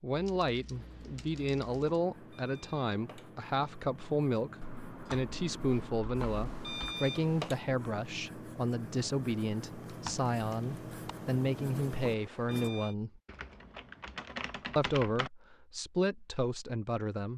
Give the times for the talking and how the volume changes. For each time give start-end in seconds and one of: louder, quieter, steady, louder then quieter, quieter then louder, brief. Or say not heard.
0.0-13.2 steady
14.8-17.3 brief.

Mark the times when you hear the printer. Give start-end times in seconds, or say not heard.
not heard.